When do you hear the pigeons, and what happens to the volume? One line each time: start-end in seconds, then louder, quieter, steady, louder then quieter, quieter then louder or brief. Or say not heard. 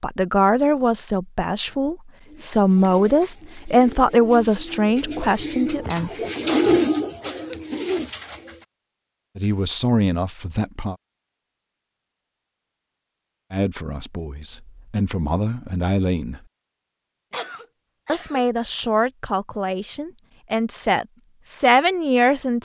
2.2-8.7 louder then quieter.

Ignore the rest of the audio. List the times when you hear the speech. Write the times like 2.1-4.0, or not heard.
0.0-6.2, 9.3-10.9, 13.5-16.4, 18.1-22.6.